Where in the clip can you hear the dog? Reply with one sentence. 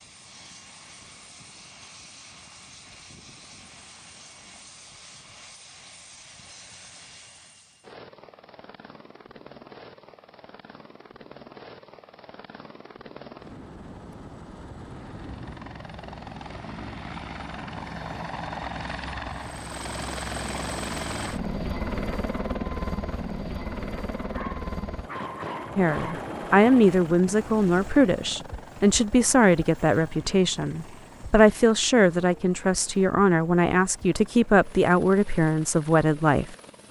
The dog can be heard from 24.2 to 26.2 s.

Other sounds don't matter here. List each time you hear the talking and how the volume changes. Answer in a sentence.
The talking can be heard from 25.8 to 36.5 s, at a steady volume.